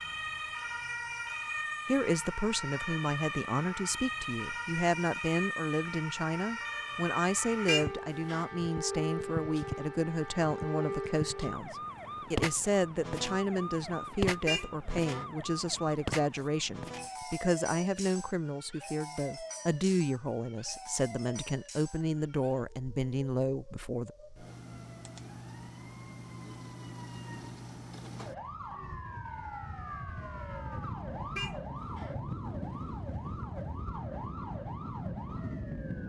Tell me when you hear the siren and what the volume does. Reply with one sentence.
You can hear the siren from 0.0 to 36.0 s, getting quieter then louder.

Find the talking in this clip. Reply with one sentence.
You can hear the talking from 1.9 to 24.1 s.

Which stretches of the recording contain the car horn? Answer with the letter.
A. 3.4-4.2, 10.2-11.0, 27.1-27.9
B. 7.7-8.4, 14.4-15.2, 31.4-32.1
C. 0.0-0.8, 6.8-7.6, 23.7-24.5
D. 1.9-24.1
B.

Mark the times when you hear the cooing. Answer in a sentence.
You can't hear the cooing here.